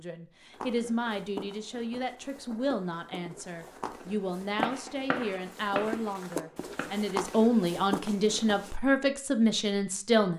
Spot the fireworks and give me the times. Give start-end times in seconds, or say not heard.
4.5-7.0.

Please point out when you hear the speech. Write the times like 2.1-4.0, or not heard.
0.0-10.3.